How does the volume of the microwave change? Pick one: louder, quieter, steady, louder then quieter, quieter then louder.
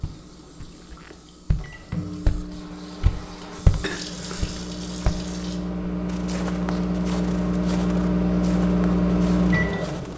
louder.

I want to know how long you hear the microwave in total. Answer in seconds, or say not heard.
10 s.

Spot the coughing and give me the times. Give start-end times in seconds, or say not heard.
3.4-4.5.